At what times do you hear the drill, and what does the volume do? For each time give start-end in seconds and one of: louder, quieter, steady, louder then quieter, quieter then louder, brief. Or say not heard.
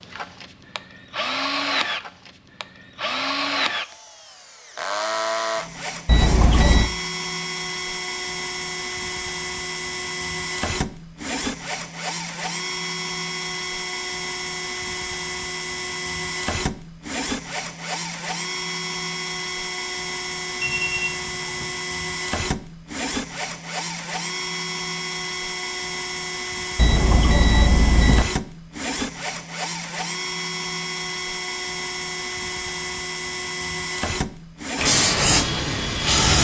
0.0-36.2 steady.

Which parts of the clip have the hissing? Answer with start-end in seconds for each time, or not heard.
34.8-36.3.